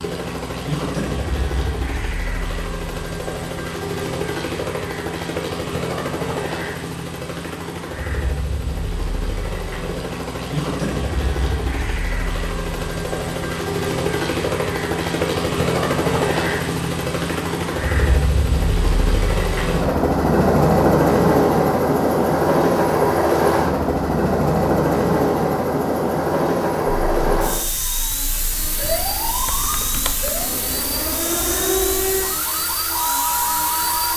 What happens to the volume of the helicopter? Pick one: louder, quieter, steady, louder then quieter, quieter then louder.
louder then quieter.